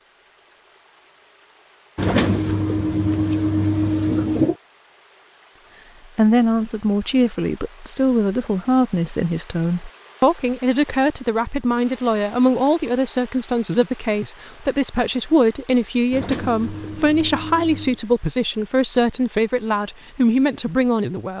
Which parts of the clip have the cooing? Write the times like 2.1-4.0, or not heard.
1.9-4.5, 16.1-18.0.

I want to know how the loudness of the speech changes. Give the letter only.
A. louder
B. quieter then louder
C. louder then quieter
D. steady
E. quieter
D.